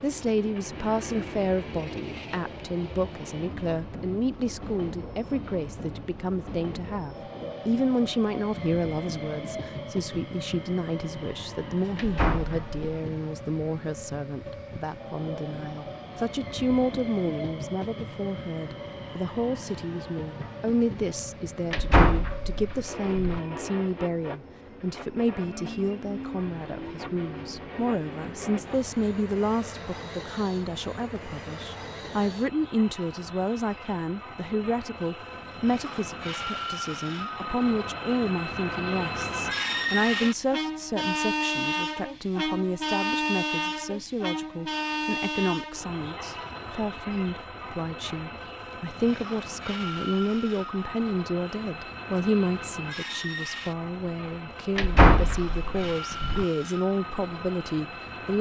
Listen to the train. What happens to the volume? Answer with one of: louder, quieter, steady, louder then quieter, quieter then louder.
louder then quieter.